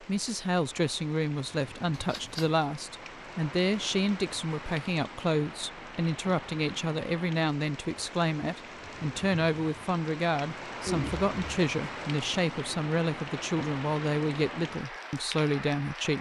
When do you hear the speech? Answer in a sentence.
The speech can be heard from 0.0 to 16.1 s.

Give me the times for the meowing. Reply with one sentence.
The meowing can be heard from 1.9 to 2.5 s and from 10.8 to 11.6 s.